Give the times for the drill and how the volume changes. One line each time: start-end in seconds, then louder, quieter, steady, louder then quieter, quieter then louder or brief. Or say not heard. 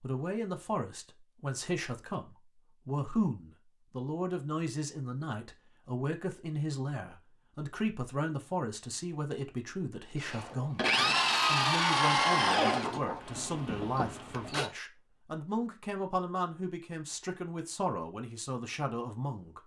10.2-14.7 quieter.